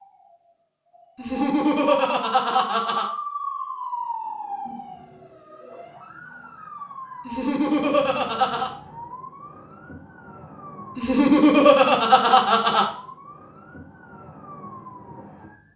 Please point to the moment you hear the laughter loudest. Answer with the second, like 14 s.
12 s.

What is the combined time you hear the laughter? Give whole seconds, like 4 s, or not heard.
5 s.